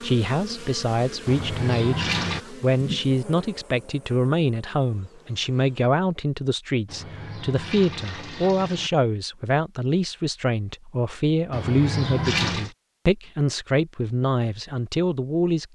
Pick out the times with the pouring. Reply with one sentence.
The pouring can be heard from 1.2 to 2.4 s, from 6.8 to 8.9 s and from 11.5 to 12.7 s.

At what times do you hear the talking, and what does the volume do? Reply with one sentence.
The talking can be heard from 0.0 to 15.7 s, at a steady volume.